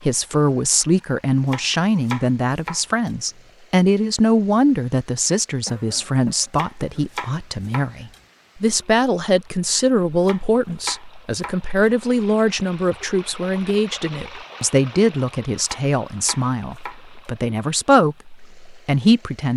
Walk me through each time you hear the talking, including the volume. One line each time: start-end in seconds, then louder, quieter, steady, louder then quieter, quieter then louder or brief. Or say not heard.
0.0-19.5 steady.